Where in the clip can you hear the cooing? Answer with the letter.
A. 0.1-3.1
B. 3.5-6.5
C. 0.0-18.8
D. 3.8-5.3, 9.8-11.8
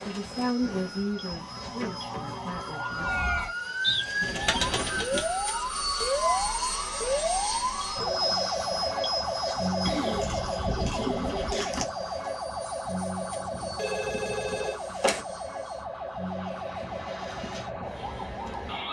D.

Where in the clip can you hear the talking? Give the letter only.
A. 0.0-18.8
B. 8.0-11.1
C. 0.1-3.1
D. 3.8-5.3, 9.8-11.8
C.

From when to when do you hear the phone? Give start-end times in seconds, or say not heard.
13.8-15.2.